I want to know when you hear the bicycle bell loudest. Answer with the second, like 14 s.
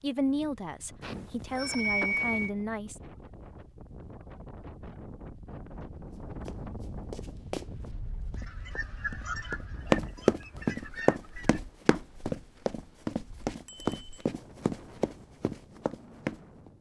2 s.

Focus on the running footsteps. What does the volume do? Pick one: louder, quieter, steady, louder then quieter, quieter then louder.
louder then quieter.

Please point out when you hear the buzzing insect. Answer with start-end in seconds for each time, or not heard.
not heard.